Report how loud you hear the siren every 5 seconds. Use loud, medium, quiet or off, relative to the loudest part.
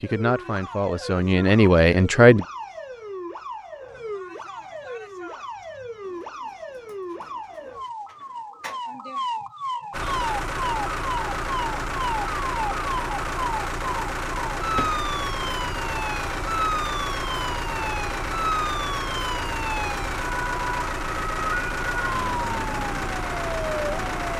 medium, medium, loud, loud, loud.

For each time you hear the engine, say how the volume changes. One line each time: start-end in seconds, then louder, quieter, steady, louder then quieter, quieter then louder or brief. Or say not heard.
9.9-24.3 steady.